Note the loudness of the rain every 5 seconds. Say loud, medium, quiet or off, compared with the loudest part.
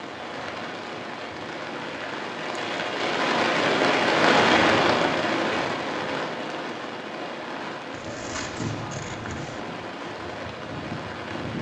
loud, medium, medium.